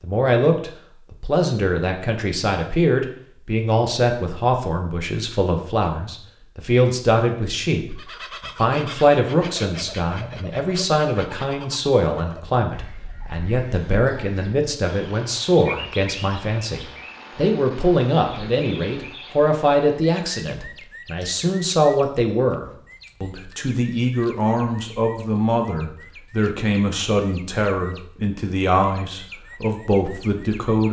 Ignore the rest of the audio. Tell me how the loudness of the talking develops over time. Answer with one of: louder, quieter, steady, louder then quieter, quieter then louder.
steady.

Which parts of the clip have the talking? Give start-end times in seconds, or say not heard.
0.0-30.8.